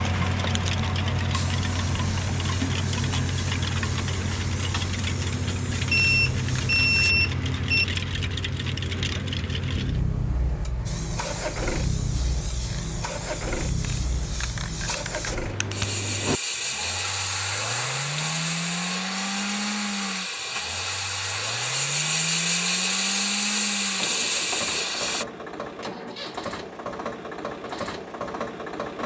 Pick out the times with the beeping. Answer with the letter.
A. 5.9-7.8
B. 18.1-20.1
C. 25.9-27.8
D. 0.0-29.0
A.